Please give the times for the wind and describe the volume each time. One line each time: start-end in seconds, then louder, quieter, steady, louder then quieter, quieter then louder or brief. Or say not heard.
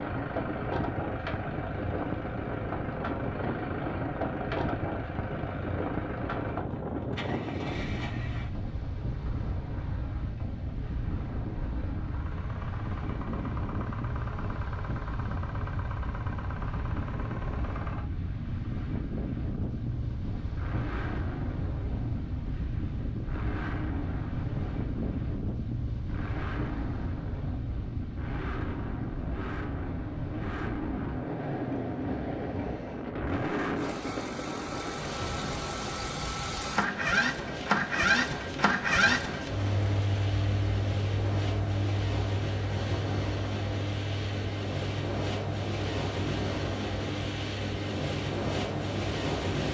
0.0-49.6 steady.